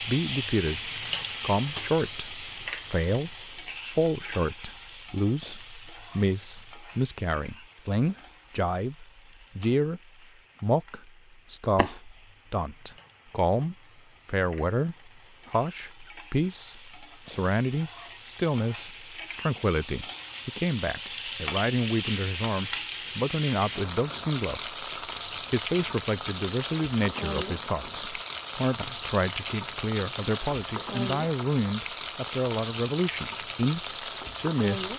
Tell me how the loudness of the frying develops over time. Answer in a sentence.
The loudness of the frying goes down, then up.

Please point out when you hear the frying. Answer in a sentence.
The frying can be heard from 0.0 to 34.9 s.